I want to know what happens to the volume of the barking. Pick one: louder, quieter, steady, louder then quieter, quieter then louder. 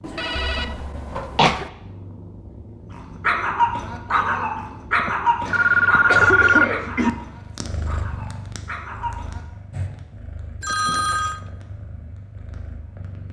quieter.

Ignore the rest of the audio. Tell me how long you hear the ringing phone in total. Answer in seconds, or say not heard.
4 s.